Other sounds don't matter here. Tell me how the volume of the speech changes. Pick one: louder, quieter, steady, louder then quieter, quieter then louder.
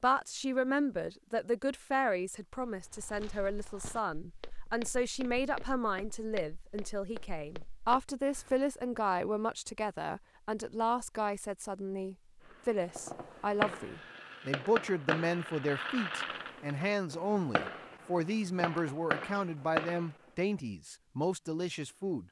steady.